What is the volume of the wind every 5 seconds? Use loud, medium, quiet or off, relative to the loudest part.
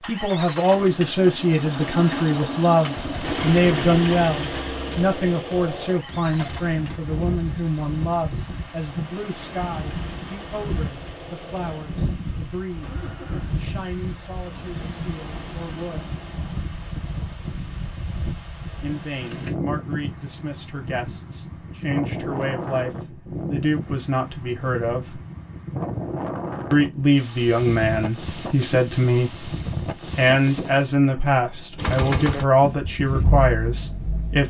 off, loud, loud, loud, loud, loud, medium.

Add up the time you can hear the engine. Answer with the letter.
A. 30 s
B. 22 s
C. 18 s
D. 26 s
C.